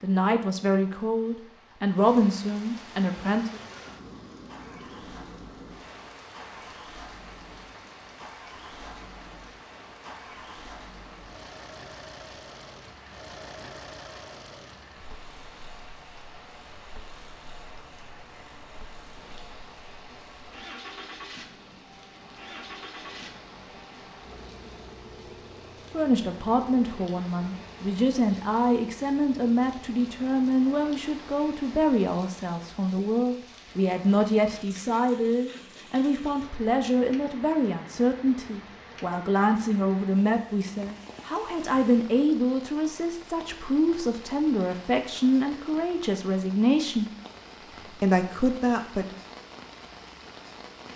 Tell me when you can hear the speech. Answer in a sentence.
The speech can be heard from 0.0 to 3.6 s, from 25.9 to 47.1 s and from 47.9 to 49.1 s.